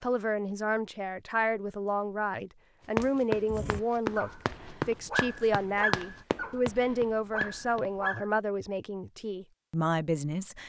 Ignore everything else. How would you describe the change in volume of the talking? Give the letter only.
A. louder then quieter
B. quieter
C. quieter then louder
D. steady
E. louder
D.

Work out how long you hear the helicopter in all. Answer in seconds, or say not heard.
not heard.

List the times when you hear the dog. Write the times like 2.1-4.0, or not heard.
3.5-8.2.